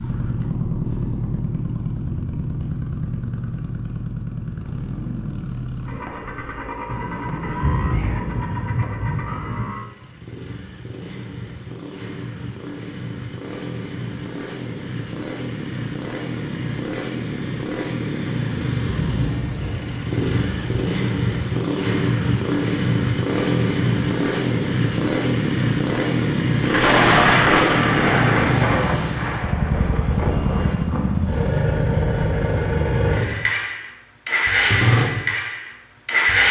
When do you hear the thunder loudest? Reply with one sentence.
The loudest moment of the thunder is at 27 seconds.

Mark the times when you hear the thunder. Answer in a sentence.
You can hear the thunder from 6.8 to 9.7 s, from 18.8 to 20.8 s and from 26.6 to 31.2 s.